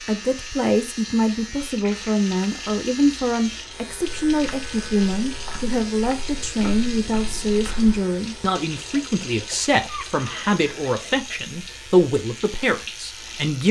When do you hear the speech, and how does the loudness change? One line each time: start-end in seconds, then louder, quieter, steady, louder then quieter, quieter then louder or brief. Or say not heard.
0.1-13.6 steady.